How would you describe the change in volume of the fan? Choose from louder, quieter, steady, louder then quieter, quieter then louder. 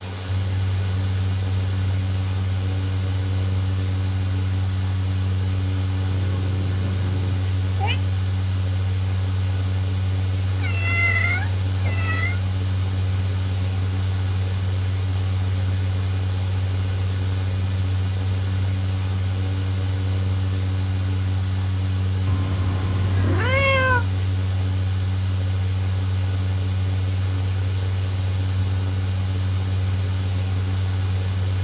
steady.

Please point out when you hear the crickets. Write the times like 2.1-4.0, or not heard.
not heard.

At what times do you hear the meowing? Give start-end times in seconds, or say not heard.
6.1-8.0, 10.6-12.4, 22.2-24.1.